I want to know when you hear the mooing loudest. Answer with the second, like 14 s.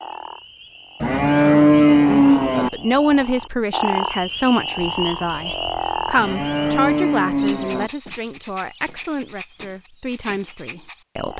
2 s.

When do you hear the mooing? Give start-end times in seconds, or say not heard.
1.0-2.7, 6.2-7.9.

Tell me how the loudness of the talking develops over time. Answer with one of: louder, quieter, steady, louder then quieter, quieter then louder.
quieter.